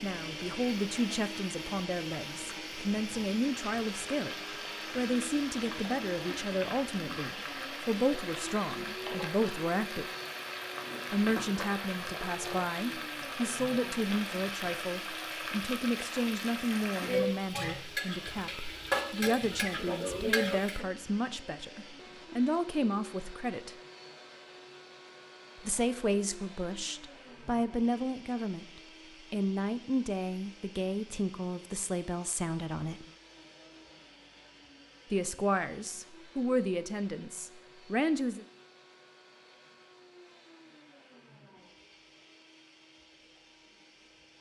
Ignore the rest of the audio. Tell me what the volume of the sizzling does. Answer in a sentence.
The loudness of the sizzling goes up.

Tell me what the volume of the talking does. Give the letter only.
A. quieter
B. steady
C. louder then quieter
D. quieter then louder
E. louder
B.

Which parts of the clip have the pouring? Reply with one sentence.
The pouring can't be heard in this clip.